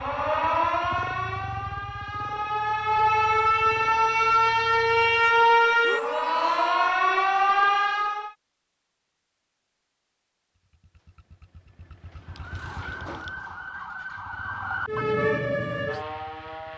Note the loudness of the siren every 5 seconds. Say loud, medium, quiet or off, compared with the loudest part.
loud, loud, quiet, medium.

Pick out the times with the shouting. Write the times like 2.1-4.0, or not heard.
5.8-7.0.